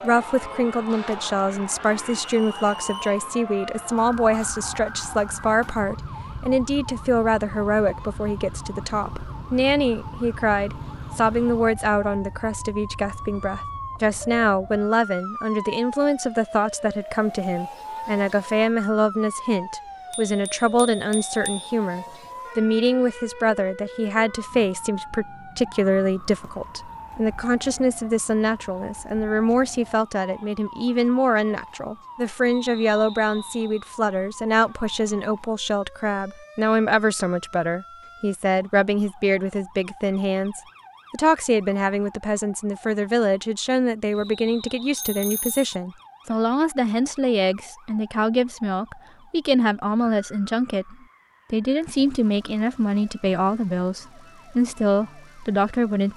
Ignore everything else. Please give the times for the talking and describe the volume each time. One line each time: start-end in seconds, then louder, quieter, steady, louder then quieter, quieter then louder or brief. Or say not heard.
0.0-56.1 steady.